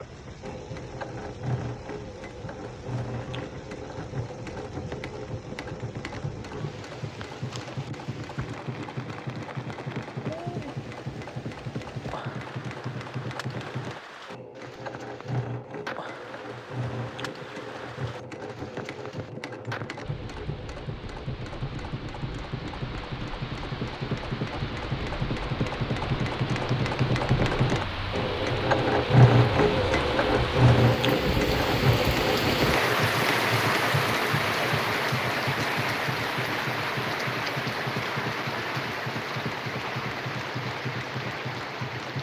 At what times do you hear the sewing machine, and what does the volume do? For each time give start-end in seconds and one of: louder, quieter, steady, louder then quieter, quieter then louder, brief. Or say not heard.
0.0-42.1 louder then quieter.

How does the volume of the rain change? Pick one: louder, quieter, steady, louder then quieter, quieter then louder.
louder.